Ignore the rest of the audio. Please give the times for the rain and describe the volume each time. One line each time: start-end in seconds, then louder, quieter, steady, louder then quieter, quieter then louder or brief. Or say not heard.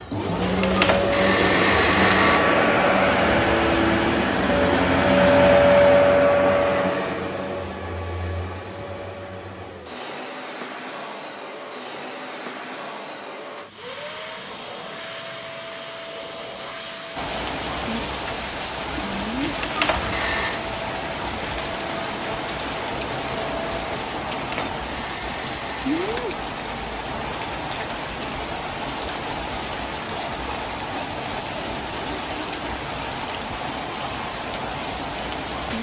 17.1-35.7 steady.